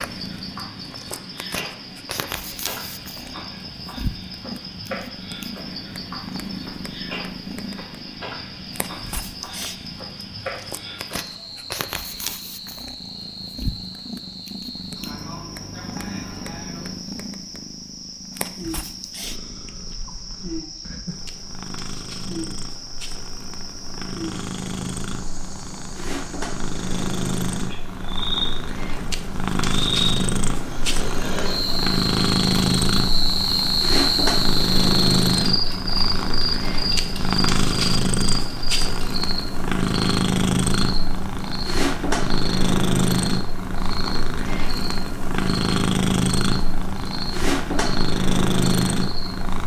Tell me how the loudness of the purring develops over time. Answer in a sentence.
The volume of the purring goes up.